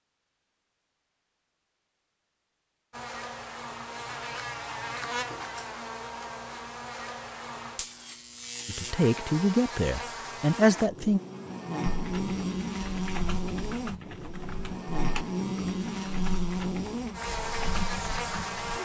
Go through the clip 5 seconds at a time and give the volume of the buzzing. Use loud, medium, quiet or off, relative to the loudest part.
medium, medium, loud, loud.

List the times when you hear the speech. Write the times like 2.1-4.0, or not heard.
8.7-11.2.